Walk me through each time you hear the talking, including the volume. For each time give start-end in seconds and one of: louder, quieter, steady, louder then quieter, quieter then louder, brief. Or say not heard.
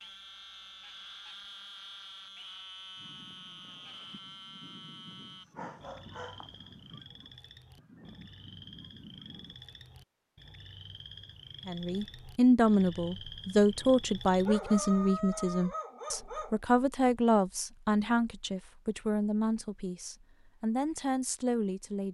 11.7-22.0 quieter.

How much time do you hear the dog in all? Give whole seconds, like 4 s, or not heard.
4 s.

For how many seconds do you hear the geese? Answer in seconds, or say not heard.
7 s.